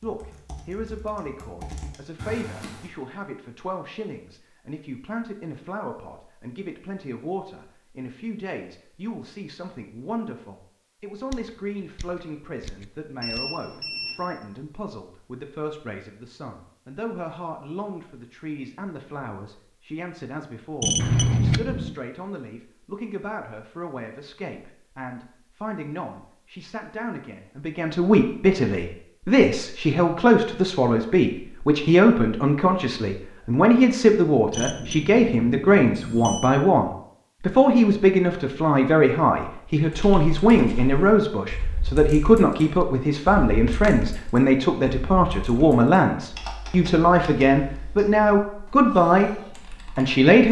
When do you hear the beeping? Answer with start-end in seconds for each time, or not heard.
13.2-14.3, 20.8-21.9, 34.5-36.5.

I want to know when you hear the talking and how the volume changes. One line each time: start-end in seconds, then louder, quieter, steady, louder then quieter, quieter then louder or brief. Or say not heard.
0.0-49.4 louder
50.0-50.4 brief.